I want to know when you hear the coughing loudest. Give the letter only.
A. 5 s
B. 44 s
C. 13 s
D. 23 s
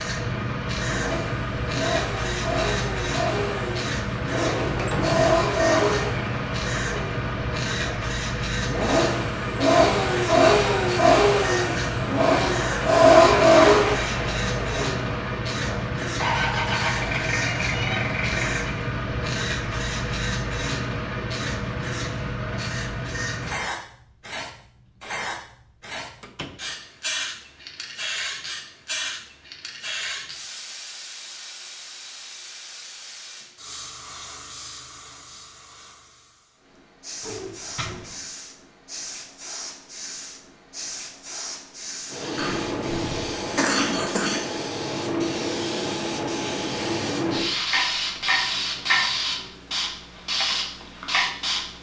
B.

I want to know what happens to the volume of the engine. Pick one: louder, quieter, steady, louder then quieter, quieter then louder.
louder then quieter.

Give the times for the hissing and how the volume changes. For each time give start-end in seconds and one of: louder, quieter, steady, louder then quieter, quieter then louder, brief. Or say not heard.
0.0-51.7 quieter then louder.